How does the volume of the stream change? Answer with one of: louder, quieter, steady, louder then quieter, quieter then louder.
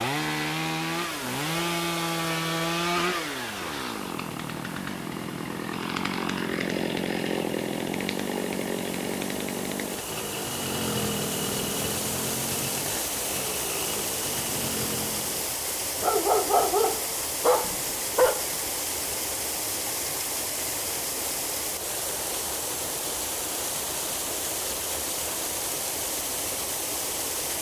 louder.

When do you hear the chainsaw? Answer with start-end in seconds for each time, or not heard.
0.0-15.5.